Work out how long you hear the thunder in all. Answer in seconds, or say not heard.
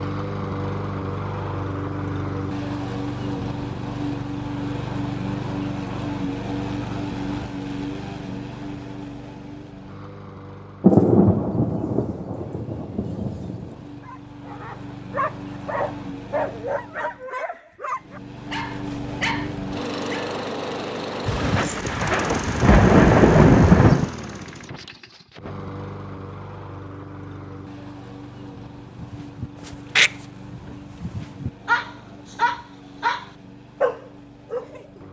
6 s.